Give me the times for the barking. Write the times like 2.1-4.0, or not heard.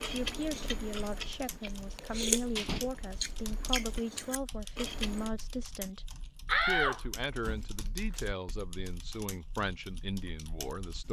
not heard.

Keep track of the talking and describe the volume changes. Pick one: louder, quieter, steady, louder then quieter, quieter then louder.
steady.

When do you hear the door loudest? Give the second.
7 s.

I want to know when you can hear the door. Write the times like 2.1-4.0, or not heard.
1.6-2.9, 6.5-8.2.